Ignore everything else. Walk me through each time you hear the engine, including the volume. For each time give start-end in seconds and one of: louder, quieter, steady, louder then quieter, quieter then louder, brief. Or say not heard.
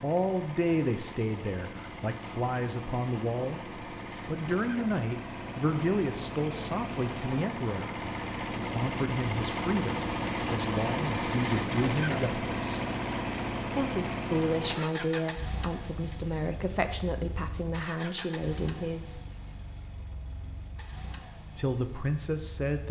0.0-22.8 louder then quieter.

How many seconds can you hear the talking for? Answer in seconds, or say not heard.
19 s.